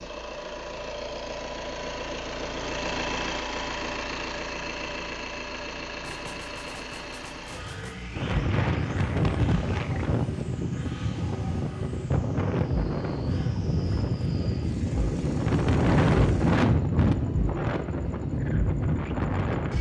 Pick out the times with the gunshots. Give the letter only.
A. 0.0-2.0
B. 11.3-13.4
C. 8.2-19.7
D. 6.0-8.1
D.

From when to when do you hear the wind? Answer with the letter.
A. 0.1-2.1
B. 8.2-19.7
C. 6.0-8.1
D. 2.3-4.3
B.